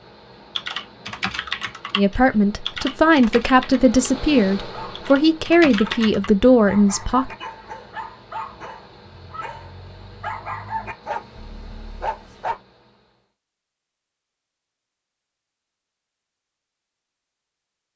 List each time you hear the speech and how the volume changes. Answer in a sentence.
The speech can be heard from 1.9 to 7.3 s, at a steady volume.